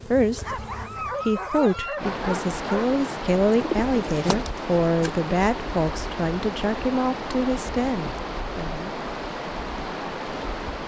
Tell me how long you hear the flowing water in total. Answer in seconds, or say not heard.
9 s.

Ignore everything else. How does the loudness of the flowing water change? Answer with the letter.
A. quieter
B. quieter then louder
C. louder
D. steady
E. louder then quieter
D.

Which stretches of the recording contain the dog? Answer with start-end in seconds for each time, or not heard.
0.3-2.9.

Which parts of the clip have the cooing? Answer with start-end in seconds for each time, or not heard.
3.5-5.2.